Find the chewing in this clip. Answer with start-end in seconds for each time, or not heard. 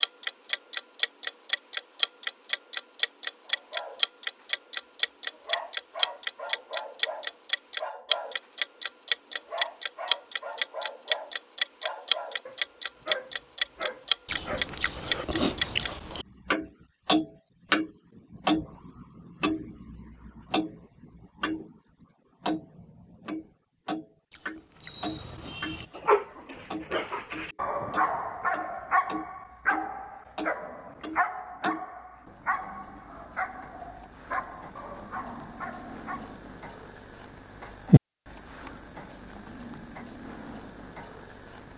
14.2-16.2, 24.3-26.1.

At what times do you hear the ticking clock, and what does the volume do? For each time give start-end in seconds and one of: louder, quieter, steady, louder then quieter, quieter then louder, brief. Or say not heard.
0.0-21.8 steady
22.4-41.7 quieter then louder.